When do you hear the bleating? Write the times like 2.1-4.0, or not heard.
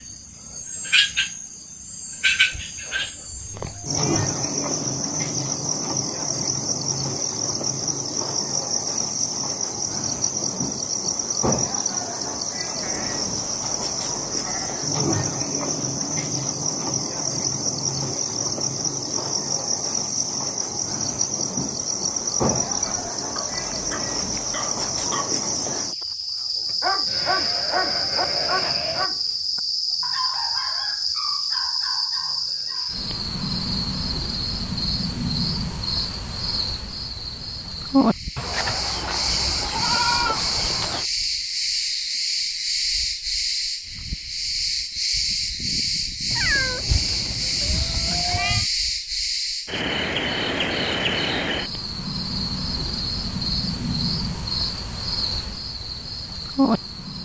2.5-4.3, 12.8-14.8, 27.1-29.1, 38.4-41.0, 46.9-48.6.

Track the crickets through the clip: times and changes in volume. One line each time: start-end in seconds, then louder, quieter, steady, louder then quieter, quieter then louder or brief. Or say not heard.
0.0-57.2 steady.